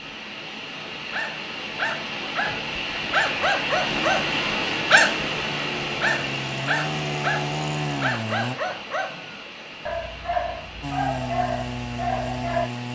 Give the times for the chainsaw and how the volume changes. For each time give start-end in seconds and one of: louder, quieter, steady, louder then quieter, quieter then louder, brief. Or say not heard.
3.8-8.6 louder
10.8-12.8 brief.